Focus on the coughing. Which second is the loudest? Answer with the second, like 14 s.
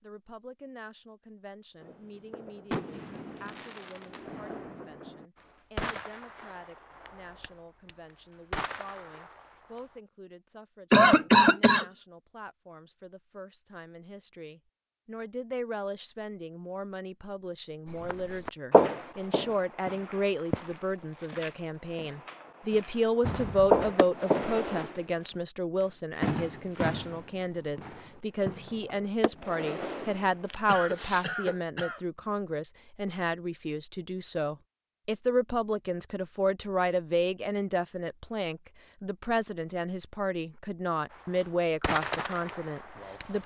11 s.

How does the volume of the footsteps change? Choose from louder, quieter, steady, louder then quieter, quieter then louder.
quieter then louder.